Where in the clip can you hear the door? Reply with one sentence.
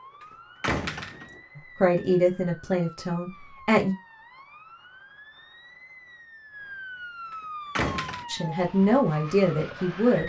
You can hear the door from 0.6 to 1.4 s and from 7.8 to 8.2 s.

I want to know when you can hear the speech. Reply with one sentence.
The speech can be heard from 1.8 to 4.0 s and from 8.2 to 10.2 s.